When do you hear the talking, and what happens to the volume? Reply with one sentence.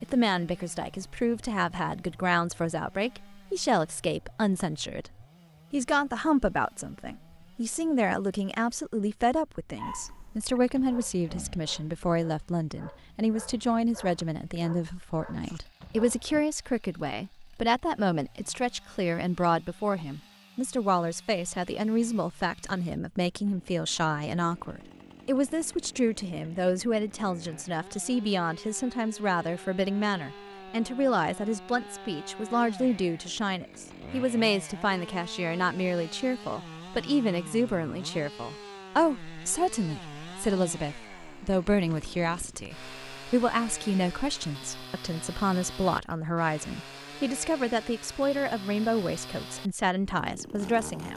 You can hear the talking from 0.0 to 51.1 s, at a steady volume.